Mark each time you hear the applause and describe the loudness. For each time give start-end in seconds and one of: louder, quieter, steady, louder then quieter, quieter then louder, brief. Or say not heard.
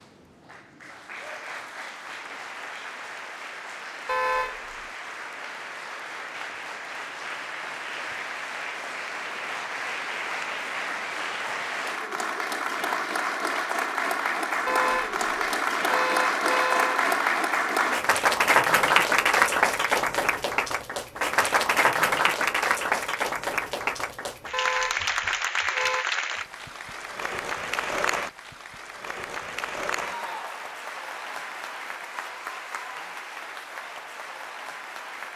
0.0-35.3 louder then quieter.